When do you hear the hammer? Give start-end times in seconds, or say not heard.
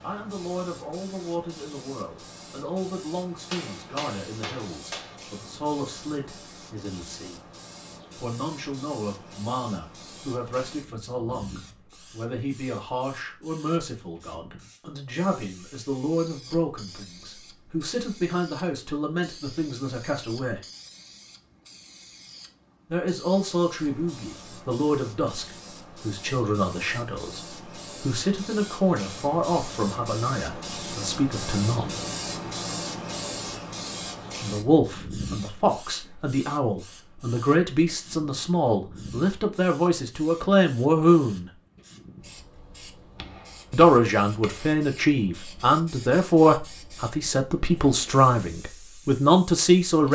3.5-5.2, 43.1-44.9.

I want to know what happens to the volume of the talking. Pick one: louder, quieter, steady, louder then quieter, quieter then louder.
louder.